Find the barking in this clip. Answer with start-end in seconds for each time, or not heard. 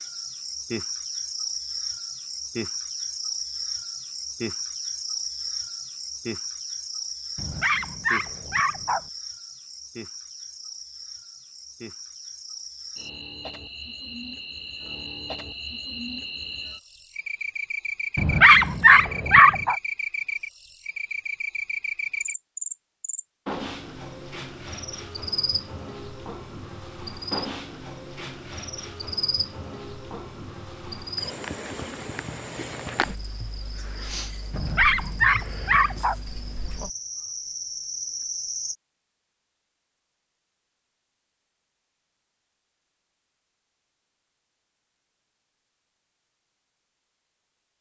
7.3-9.0, 18.1-19.8, 34.5-36.1.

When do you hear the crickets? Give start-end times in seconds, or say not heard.
0.0-38.8.